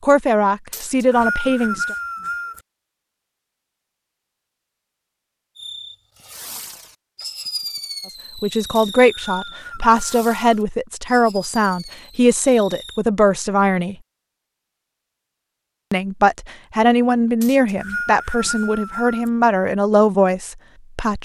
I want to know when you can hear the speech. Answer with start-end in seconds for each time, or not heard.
0.0-1.9, 8.3-13.9, 15.9-21.2.